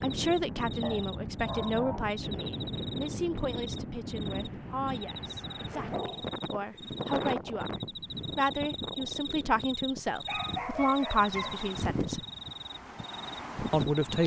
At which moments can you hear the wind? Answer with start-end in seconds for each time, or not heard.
0.0-14.2.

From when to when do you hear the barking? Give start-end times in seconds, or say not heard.
0.8-2.1, 5.7-6.4, 10.2-11.7.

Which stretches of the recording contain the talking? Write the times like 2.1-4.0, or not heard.
0.0-7.7, 8.3-12.2, 13.7-14.2.